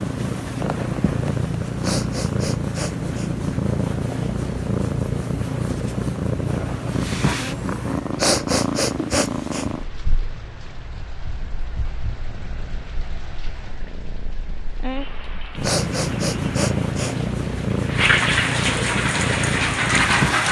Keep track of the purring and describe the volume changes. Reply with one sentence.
The volume of the purring goes down, then up.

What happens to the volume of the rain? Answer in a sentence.
The loudness of the rain goes up.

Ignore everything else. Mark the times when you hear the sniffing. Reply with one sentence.
You can hear the sniffing from 1.8 to 3.3 s, from 8.2 to 9.7 s and from 15.6 to 17.1 s.